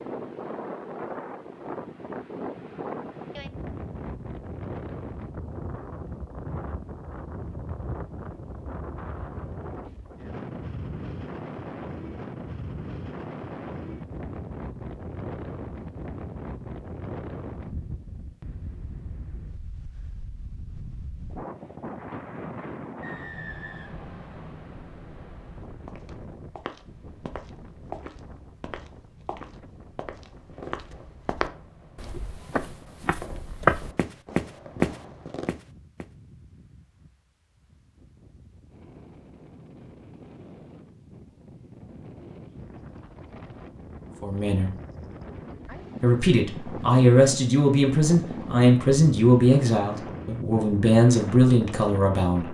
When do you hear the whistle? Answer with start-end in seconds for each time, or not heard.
23.0-24.6.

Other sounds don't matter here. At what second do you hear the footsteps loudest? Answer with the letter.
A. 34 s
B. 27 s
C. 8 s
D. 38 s
A.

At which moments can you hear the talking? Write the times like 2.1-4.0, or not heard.
44.2-44.7, 46.0-52.4.